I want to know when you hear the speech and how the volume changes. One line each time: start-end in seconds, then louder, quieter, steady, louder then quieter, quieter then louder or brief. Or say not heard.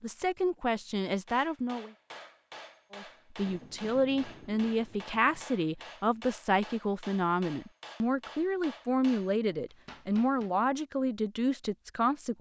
0.0-1.9 brief
2.9-12.3 steady.